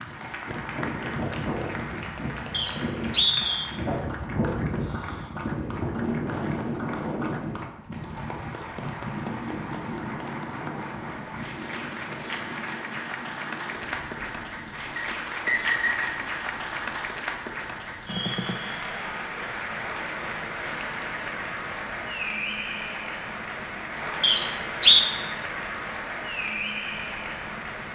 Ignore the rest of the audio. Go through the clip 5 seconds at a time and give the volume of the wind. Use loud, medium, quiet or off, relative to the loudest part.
loud, loud, medium, quiet, quiet, quiet.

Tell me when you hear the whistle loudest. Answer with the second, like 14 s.
25 s.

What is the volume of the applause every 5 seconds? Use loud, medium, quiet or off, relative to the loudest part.
medium, medium, loud, loud, loud, loud.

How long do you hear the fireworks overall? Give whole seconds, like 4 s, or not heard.
not heard.